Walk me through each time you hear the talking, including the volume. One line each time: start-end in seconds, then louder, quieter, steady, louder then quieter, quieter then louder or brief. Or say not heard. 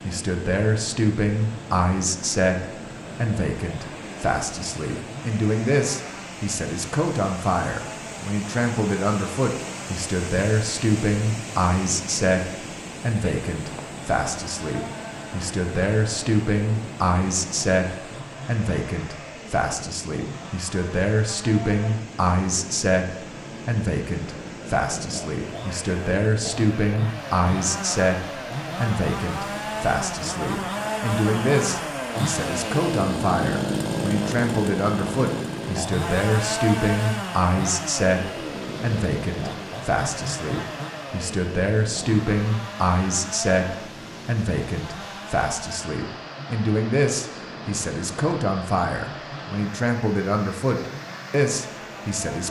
0.0-52.4 steady.